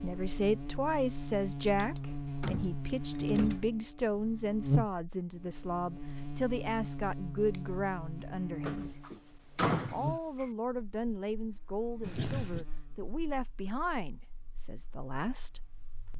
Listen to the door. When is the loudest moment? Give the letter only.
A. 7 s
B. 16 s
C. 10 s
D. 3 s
C.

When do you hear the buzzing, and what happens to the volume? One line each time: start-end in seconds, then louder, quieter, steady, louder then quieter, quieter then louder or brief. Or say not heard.
0.0-16.1 quieter.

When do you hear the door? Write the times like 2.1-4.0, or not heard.
2.4-3.8, 8.7-10.4.